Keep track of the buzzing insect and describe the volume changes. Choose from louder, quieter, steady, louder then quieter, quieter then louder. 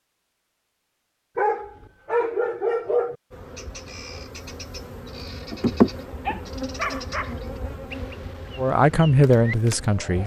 louder then quieter.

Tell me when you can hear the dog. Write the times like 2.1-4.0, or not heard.
1.4-3.1, 6.2-7.3.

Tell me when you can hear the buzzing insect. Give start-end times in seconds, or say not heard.
3.3-10.2.